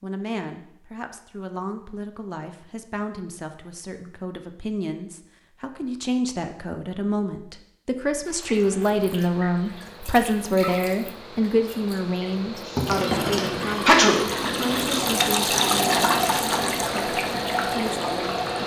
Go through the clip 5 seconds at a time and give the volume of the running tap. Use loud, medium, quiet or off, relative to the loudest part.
off, quiet, medium, loud.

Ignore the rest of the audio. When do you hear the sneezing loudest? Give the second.
14 s.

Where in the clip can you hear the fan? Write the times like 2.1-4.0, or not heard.
9.2-18.6.